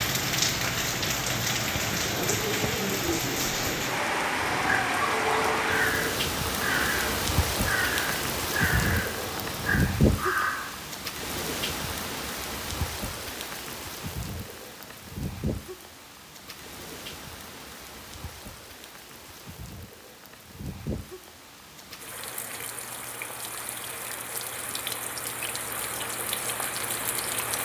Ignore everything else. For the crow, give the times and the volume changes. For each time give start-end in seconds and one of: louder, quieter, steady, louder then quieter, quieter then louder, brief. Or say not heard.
4.3-10.8 steady.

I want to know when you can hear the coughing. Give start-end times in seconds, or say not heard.
not heard.